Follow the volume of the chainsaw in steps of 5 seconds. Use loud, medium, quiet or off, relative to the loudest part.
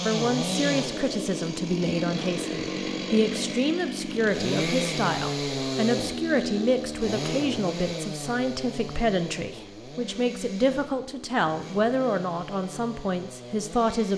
loud, loud, medium.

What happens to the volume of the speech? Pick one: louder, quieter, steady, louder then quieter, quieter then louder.
steady.